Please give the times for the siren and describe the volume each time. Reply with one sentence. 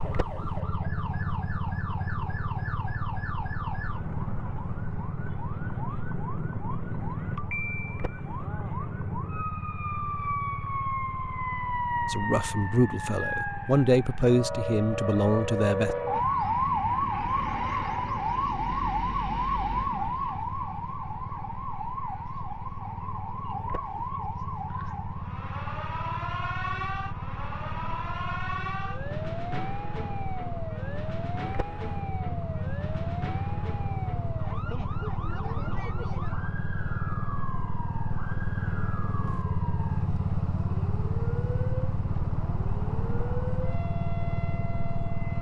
The siren can be heard from 0.0 to 45.3 s, getting louder then quieter.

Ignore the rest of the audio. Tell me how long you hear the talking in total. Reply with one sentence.
You can hear the talking for 4 seconds altogether.